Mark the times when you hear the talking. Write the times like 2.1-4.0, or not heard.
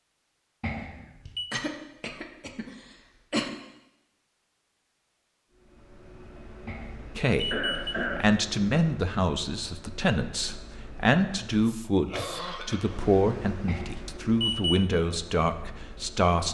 7.2-16.4.